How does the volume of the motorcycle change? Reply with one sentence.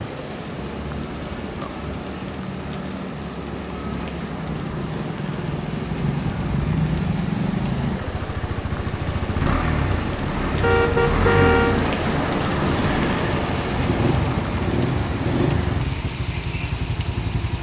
The loudness of the motorcycle goes up.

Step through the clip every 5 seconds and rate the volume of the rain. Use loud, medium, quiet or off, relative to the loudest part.
medium, medium, loud, medium.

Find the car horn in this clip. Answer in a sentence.
You can hear the car horn from 10.6 to 11.8 s.